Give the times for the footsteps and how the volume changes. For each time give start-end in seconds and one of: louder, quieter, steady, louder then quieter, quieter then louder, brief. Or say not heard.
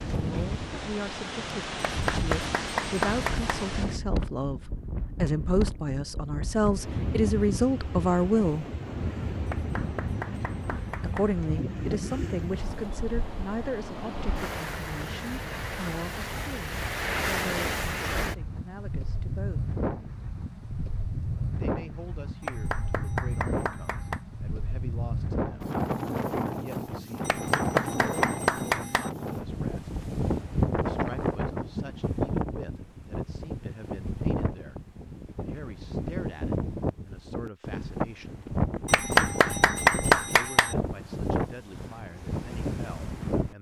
not heard.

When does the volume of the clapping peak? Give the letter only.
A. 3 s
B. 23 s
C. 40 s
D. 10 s
C.